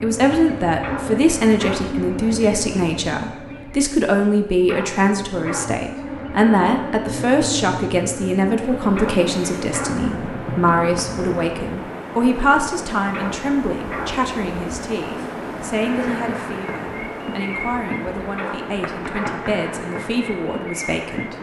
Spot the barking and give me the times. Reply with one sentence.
The barking can be heard from 0.8 to 1.9 s, from 4.7 to 5.8 s, from 8.9 to 10.1 s, from 13.1 to 14.2 s and from 18.4 to 19.4 s.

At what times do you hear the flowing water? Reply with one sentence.
The flowing water can be heard from 8.6 to 21.3 s.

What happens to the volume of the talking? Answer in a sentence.
The volume of the talking goes down.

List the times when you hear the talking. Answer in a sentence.
You can hear the talking from 0.0 to 21.3 s.